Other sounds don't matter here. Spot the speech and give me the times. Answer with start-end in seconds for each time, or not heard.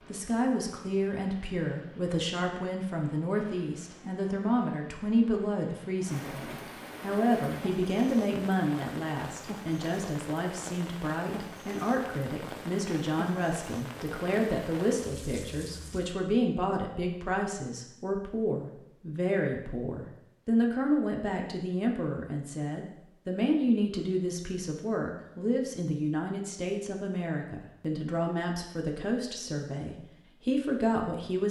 0.1-31.4.